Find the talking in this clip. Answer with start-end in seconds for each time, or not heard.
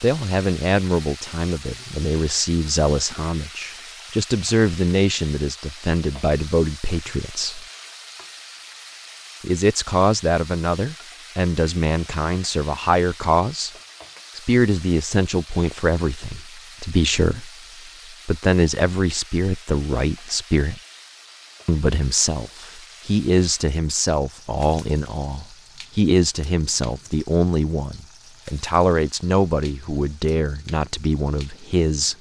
0.0-7.7, 9.4-13.7, 14.3-17.5, 18.2-20.8, 21.6-32.1.